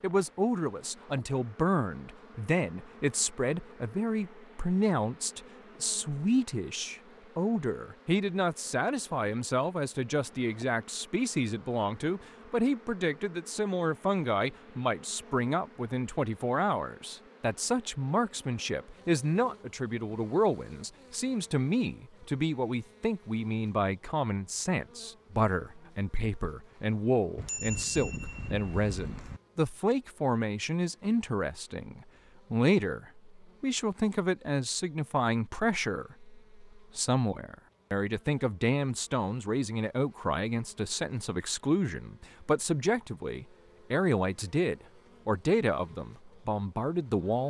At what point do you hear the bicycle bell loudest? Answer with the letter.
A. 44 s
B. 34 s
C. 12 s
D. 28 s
D.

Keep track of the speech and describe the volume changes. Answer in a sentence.
The loudness of the speech stays about the same.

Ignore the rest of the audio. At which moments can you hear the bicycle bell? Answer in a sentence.
The bicycle bell can be heard from 27.4 to 29.4 s.